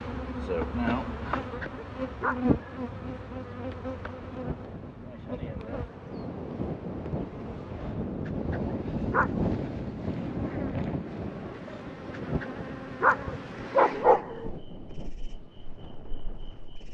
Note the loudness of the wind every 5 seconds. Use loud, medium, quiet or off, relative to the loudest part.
medium, loud, loud, quiet.